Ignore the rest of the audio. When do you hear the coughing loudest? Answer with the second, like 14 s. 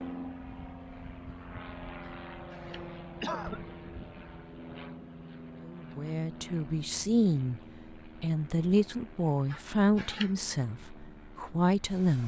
3 s.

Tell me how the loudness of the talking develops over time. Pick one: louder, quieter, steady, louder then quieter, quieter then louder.
steady.